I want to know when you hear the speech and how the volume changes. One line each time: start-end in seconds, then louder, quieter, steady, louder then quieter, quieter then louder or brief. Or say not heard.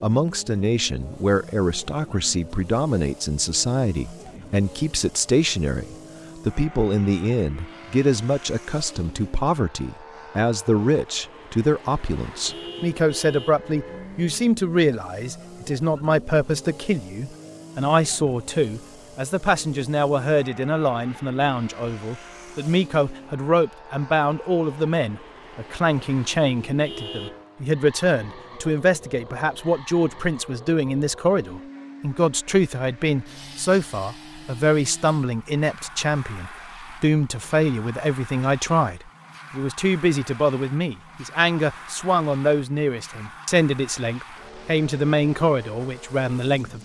0.0-46.7 steady.